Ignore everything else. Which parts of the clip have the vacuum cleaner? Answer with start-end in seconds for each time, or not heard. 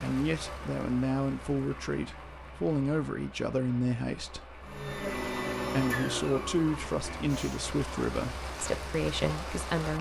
4.6-7.6.